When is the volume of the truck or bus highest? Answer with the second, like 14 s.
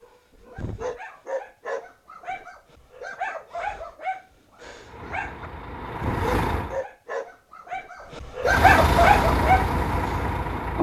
9 s.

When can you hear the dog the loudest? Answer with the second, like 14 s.
9 s.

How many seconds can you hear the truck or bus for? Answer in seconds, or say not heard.
4 s.